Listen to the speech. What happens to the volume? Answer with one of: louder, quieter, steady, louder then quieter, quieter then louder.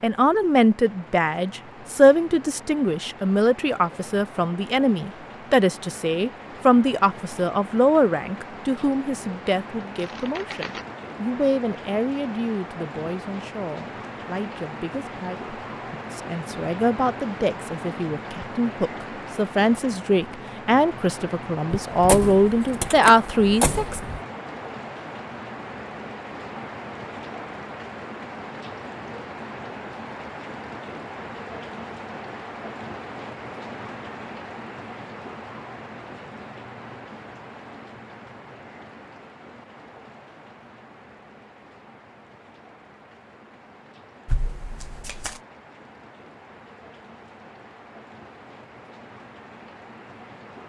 quieter then louder.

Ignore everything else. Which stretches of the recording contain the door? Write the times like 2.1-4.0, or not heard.
21.7-24.2.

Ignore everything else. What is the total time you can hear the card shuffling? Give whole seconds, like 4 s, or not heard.
2 s.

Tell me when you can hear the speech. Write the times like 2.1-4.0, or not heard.
0.0-24.0.